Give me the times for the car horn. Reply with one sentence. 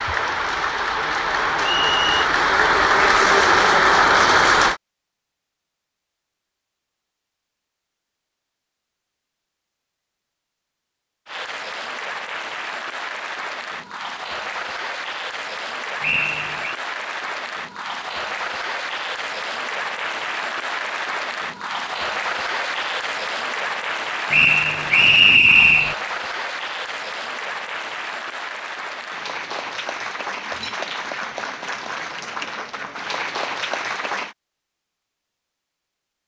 The car horn can't be heard in this clip.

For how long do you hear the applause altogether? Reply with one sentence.
The applause can be heard for 28 seconds in total.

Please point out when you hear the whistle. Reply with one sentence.
The whistle can be heard from 1.6 to 2.2 s, from 16.0 to 16.8 s and from 24.3 to 25.9 s.